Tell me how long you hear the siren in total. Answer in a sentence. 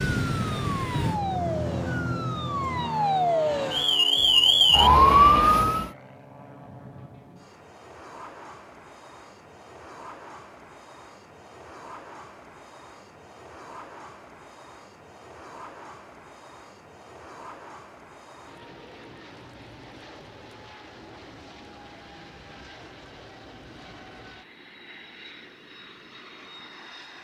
You can hear the siren for 6 seconds altogether.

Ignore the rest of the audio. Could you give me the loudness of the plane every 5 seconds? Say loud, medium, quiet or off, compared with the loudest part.
loud, quiet, quiet, quiet, quiet, quiet.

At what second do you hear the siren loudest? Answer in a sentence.
The loudest moment of the siren is at 5 seconds.